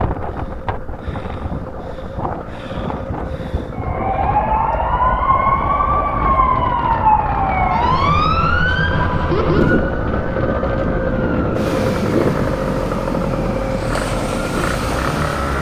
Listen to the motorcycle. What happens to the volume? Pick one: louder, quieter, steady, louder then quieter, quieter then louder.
louder.